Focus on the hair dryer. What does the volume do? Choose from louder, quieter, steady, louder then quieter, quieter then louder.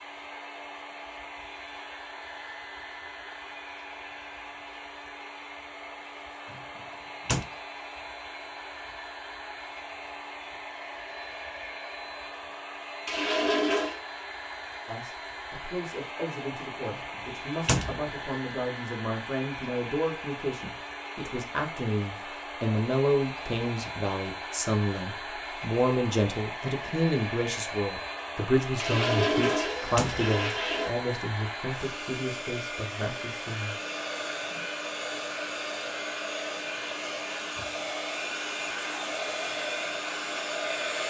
louder.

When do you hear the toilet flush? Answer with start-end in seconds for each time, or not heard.
13.1-14.0, 28.8-30.9.